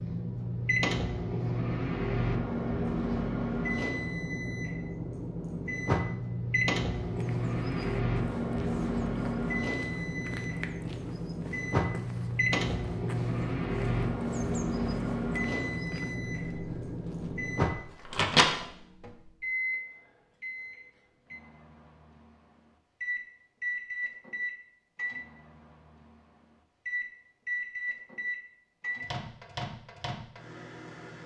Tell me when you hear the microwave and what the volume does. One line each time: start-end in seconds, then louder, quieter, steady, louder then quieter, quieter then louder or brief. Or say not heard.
0.0-31.2 quieter.